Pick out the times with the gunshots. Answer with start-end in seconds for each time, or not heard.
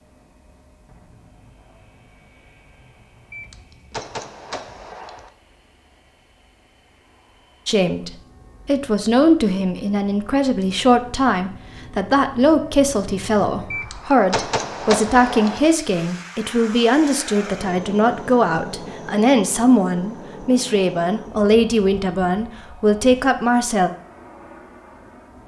3.3-5.3, 13.7-15.7.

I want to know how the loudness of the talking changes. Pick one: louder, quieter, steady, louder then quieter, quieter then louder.
steady.